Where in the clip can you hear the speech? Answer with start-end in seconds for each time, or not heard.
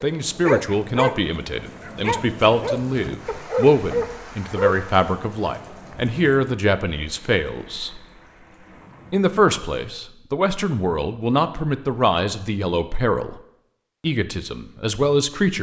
0.0-8.0, 9.1-13.3, 14.0-15.5.